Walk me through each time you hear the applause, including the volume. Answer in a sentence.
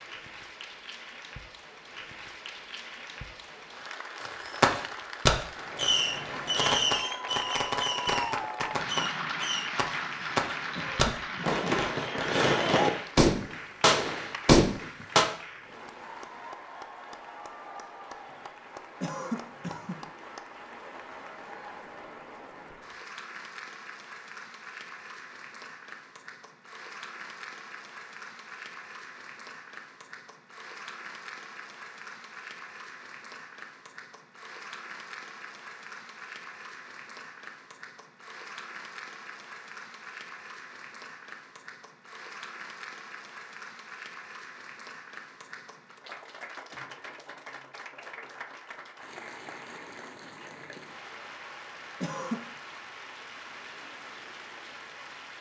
The applause can be heard from 0.0 to 55.3 s, getting quieter.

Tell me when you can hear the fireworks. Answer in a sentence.
The fireworks can be heard from 4.2 to 15.2 s.